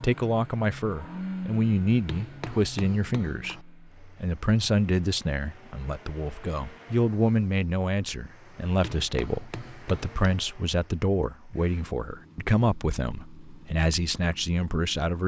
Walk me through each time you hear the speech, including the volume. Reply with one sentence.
The speech can be heard from 0.0 to 15.2 s, at a steady volume.